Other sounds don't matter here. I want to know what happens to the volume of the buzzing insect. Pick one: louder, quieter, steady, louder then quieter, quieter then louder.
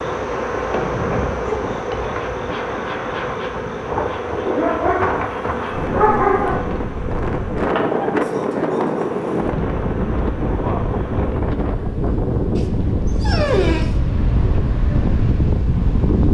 quieter.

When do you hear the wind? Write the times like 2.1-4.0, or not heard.
0.0-16.2.